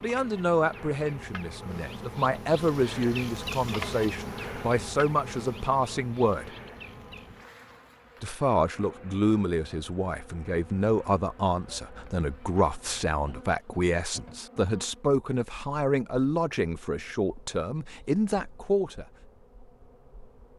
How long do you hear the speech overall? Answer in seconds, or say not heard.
17 s.